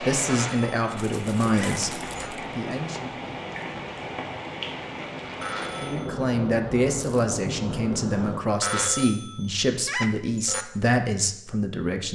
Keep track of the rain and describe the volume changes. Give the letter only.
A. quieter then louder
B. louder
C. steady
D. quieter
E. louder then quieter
C.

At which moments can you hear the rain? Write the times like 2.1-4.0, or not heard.
0.0-8.4.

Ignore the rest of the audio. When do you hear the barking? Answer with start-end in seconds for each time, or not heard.
not heard.